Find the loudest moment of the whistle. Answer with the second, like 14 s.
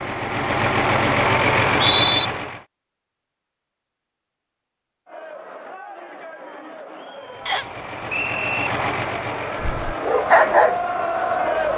2 s.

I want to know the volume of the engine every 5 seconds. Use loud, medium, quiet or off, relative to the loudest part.
loud, medium, quiet.